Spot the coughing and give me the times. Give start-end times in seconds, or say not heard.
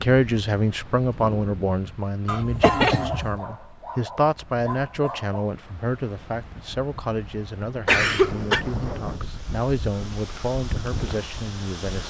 2.2-3.4, 7.8-8.7.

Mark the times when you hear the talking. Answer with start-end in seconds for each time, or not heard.
0.0-12.0.